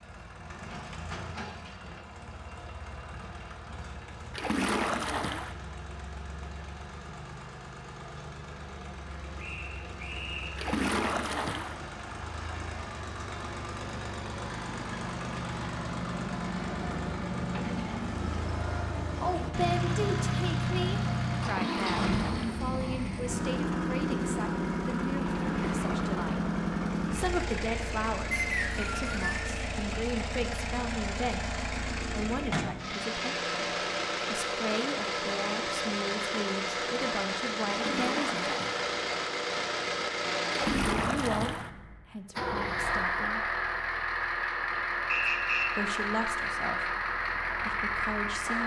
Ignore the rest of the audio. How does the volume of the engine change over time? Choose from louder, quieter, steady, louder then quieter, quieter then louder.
louder.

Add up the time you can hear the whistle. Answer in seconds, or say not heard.
3 s.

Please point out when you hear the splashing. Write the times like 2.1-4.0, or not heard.
4.3-5.5, 10.6-11.8, 21.5-22.6, 25.3-26.4, 37.7-38.9, 40.5-41.7.